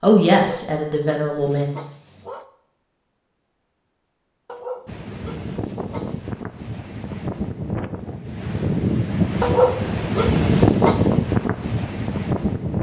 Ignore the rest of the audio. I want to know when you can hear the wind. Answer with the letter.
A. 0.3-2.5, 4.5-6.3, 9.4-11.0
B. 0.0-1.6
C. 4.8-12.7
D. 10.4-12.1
C.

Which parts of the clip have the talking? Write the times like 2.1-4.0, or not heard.
0.0-1.6.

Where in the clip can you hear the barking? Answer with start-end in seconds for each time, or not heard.
0.3-2.5, 4.5-6.3, 9.4-11.0.